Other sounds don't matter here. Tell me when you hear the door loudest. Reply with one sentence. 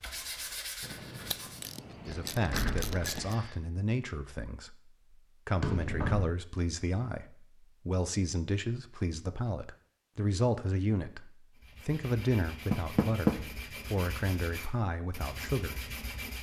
The volume of the door peaks at 13 seconds.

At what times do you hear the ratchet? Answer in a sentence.
The ratchet can be heard from 0.8 to 3.4 s.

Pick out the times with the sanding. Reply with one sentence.
The sanding can be heard from 0.0 to 1.8 s and from 11.6 to 16.3 s.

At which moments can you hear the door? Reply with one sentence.
You can hear the door from 2.0 to 3.5 s, from 5.6 to 6.2 s and from 12.7 to 13.3 s.